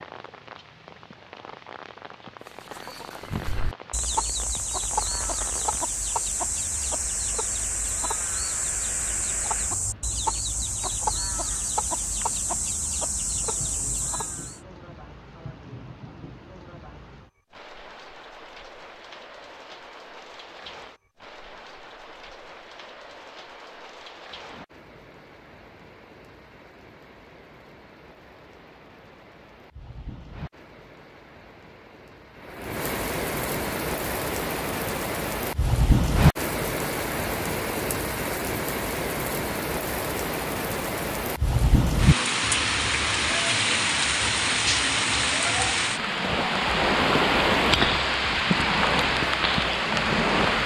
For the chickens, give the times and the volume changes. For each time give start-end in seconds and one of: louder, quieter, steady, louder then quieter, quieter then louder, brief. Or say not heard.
2.5-14.6 steady.